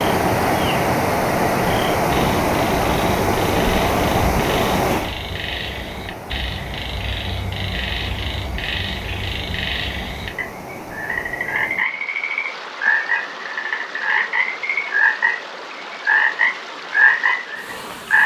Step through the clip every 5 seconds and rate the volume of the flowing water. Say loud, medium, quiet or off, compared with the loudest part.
loud, quiet, quiet, quiet.